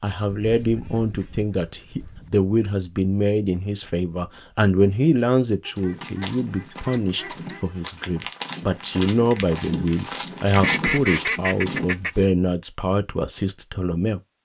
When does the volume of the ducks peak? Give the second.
11 s.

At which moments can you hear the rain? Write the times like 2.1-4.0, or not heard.
not heard.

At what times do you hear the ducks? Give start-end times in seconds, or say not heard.
0.2-2.3, 5.7-7.7, 10.6-12.1.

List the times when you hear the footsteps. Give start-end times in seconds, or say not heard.
5.8-12.3.